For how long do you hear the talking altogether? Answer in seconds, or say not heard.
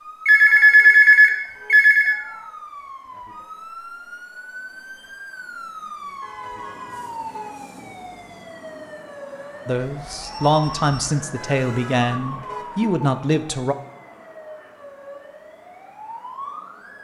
4 s.